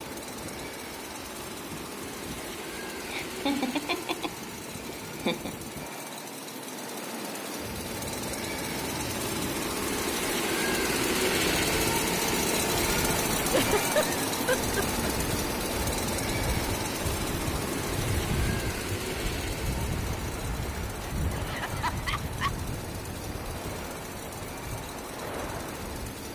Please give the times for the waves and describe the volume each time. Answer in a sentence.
The waves can be heard from 0.0 to 26.3 s, getting louder.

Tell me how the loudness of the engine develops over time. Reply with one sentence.
The loudness of the engine goes up, then down.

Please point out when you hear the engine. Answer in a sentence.
You can hear the engine from 0.0 to 26.3 s.